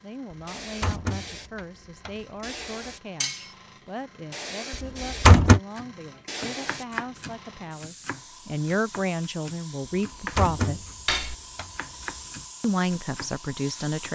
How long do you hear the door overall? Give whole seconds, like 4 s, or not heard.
6 s.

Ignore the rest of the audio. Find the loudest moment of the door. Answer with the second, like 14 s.
5 s.